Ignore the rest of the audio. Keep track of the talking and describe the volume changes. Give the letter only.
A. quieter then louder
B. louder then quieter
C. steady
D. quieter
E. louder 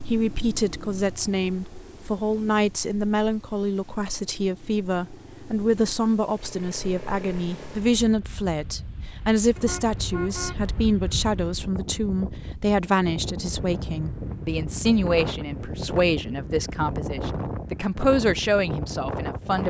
C.